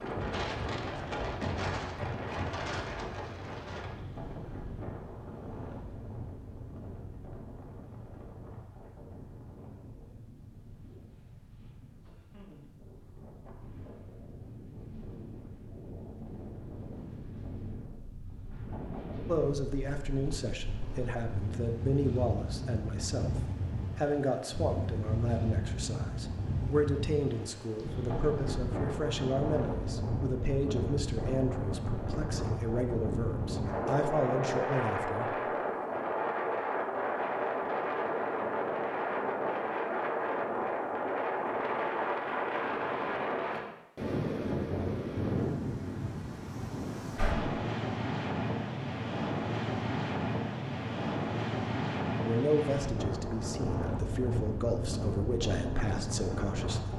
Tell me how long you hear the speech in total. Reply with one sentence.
You can hear the speech for 21 seconds altogether.